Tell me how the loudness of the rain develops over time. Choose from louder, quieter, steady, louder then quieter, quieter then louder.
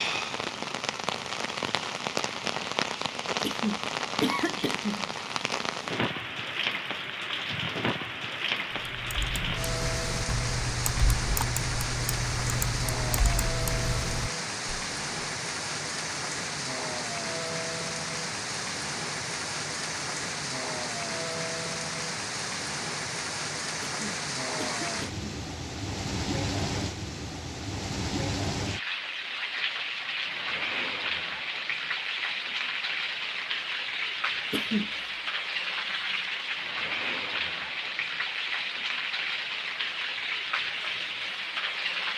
steady.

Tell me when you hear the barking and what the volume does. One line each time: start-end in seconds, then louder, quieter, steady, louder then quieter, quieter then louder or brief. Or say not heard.
not heard.